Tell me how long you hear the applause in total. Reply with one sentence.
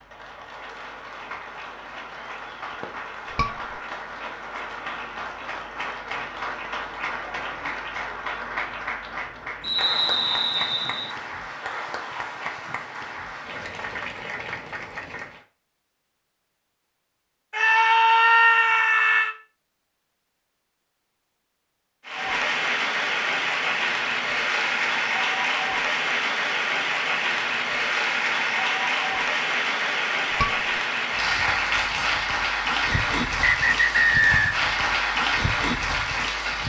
You can hear the applause for 30 seconds altogether.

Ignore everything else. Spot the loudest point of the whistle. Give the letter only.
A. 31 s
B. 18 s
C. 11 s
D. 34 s
D.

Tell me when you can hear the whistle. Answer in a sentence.
The whistle can be heard from 9.6 to 11.2 s and from 32.9 to 34.6 s.